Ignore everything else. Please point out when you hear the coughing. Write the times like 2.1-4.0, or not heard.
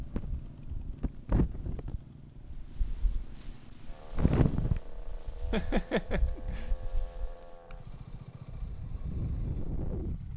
5.5-6.7.